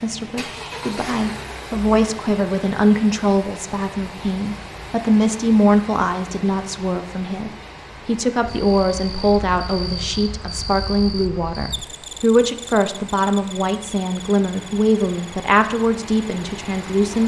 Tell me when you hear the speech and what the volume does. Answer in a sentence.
You can hear the speech from 0.0 to 17.2 s, at a steady volume.